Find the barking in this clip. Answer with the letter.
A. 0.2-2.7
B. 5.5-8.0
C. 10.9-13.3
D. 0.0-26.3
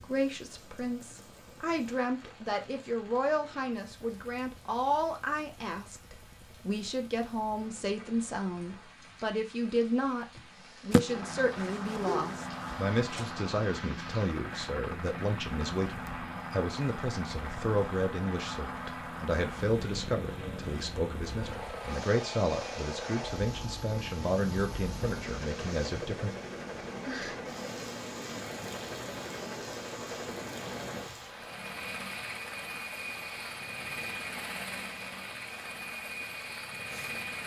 C.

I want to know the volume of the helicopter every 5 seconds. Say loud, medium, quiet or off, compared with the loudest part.
quiet, quiet, loud, loud, loud, loud, loud, loud.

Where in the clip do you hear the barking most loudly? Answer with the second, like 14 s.
11 s.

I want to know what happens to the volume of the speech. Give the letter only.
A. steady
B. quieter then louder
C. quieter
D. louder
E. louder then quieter
A.